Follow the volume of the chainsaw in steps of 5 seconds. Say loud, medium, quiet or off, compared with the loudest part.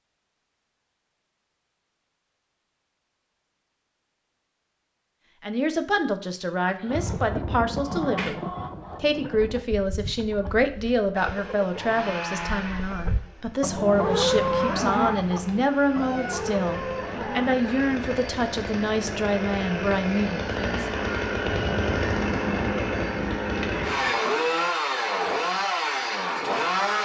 off, off, medium, medium, loud, loud.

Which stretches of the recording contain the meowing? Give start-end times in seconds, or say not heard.
15.4-16.4.